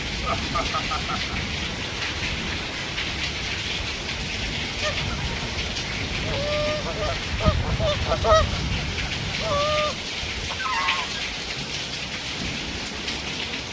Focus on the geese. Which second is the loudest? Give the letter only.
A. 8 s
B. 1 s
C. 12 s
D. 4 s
A.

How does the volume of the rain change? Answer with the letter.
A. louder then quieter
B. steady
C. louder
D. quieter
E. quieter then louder
B.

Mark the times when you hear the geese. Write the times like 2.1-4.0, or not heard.
4.8-11.2.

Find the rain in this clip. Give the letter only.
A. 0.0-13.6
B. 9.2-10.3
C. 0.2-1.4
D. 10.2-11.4
A.